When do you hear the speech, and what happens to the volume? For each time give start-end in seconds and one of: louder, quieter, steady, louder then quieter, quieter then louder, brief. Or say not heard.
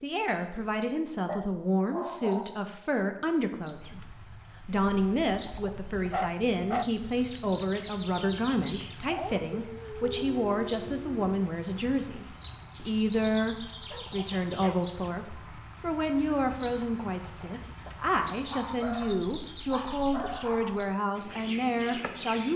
0.0-22.5 steady.